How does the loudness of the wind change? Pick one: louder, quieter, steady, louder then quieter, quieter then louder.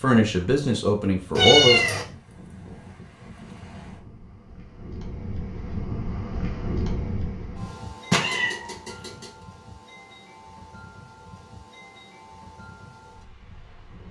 louder then quieter.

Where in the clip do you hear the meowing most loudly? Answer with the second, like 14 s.
2 s.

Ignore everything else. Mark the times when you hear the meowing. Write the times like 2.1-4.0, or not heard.
1.4-2.0, 8.1-9.2.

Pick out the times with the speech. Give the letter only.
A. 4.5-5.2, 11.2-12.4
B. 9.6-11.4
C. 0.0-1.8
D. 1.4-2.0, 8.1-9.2
C.